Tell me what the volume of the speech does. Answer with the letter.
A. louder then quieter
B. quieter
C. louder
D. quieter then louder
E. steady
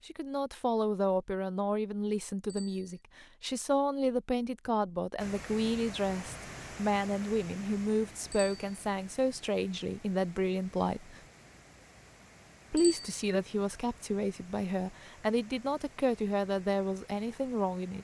E.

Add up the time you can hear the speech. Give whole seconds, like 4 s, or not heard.
16 s.